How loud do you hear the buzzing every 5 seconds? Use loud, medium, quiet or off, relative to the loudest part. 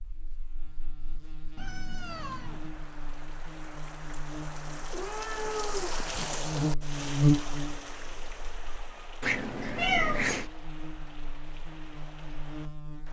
quiet, loud, quiet.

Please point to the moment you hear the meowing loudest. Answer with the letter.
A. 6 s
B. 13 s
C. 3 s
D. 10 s
D.